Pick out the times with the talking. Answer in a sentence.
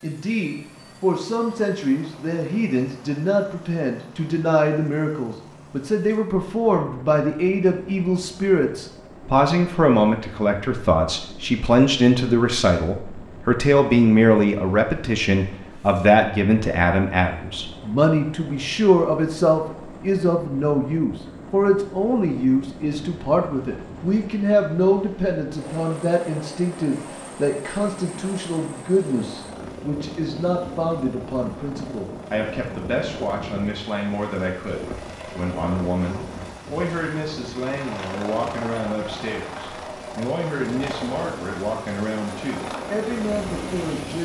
You can hear the talking from 0.0 to 44.1 s.